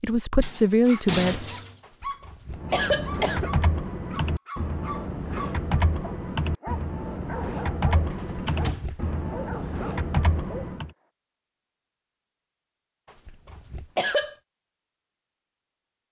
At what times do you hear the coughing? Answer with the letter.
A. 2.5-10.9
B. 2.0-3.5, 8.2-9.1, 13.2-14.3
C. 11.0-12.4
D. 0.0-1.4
B.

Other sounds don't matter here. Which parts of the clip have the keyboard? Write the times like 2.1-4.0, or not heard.
2.5-10.9.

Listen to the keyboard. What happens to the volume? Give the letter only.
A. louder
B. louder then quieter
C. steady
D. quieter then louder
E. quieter
C.